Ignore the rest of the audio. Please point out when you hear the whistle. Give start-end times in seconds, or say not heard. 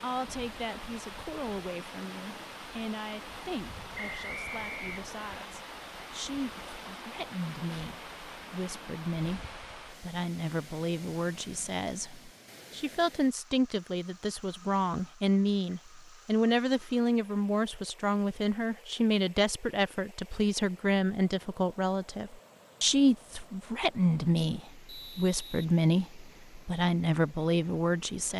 4.0-5.5, 24.9-25.6.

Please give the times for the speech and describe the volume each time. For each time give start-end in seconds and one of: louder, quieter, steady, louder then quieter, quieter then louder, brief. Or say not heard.
0.0-28.3 louder.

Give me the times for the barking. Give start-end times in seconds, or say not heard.
not heard.